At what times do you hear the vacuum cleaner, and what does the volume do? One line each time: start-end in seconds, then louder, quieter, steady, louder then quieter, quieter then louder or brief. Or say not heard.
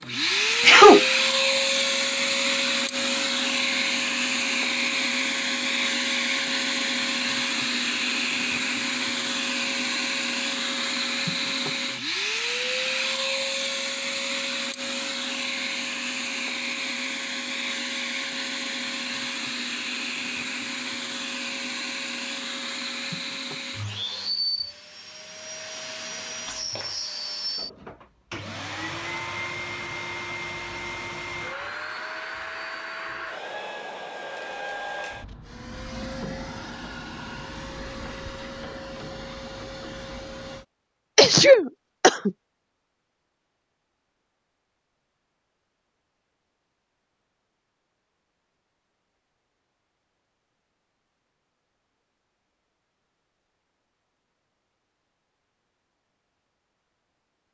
0.0-40.6 quieter.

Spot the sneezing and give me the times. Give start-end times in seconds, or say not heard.
0.6-1.1, 41.1-42.3.